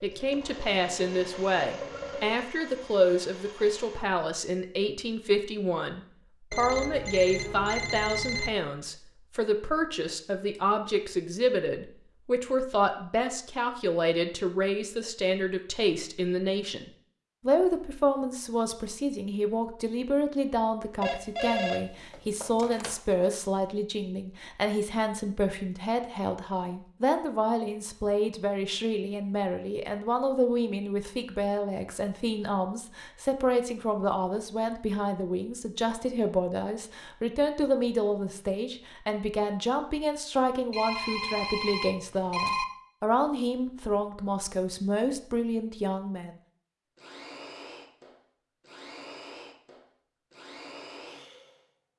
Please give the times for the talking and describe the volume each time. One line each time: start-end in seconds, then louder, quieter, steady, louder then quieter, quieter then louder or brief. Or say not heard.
0.0-46.4 steady.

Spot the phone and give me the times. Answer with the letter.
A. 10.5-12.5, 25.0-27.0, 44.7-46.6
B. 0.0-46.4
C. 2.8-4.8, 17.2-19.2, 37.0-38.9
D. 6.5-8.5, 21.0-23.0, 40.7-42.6
D.